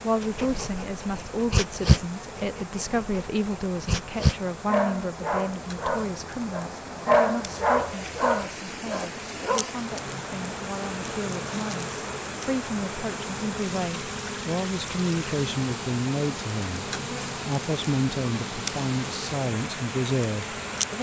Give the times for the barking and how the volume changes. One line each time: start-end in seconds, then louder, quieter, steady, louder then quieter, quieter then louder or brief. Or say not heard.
0.2-9.7 quieter then louder.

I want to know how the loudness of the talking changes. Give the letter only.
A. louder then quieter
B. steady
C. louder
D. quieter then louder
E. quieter
D.